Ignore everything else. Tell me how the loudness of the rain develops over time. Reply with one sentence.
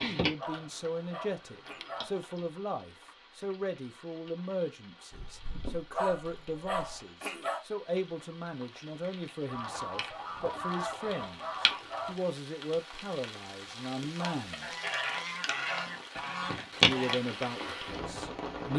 The volume of the rain goes up.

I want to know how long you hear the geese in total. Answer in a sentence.
The geese can be heard for 9 seconds in total.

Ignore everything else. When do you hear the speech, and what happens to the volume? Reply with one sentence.
The speech can be heard from 0.0 to 14.7 s, at a steady volume; and briefly from 16.9 to 18.7 s.